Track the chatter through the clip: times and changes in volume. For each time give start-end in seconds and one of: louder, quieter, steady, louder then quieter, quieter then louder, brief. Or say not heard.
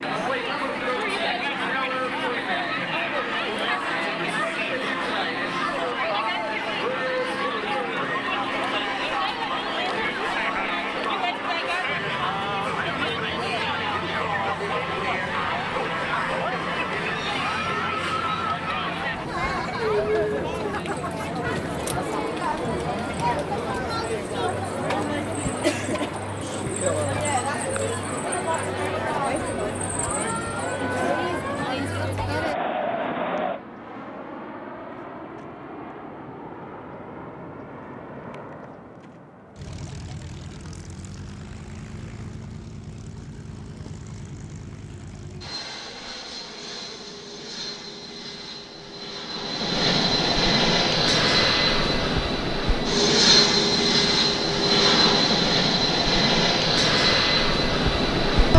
0.0-33.6 steady.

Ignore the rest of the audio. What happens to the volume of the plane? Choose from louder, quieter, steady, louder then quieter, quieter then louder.
louder.